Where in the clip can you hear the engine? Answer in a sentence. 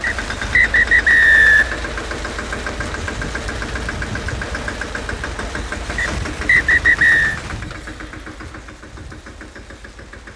You can hear the engine from 0.0 to 10.3 s.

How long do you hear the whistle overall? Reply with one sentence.
The whistle can be heard for 3 seconds in total.